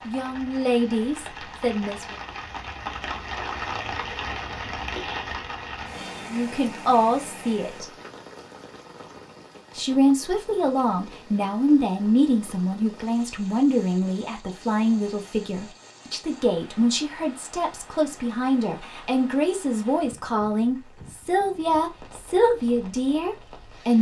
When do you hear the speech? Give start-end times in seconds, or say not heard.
0.0-2.1, 6.3-7.8, 9.8-23.9.